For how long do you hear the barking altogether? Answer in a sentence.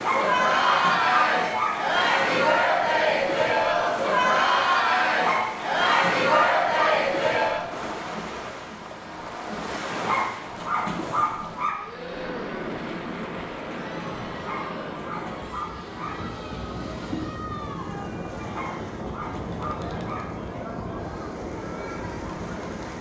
You can hear the barking for 9 seconds altogether.